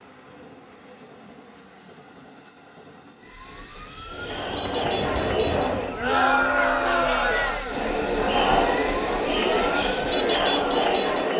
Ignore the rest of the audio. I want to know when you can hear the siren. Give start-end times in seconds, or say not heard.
3.2-11.3.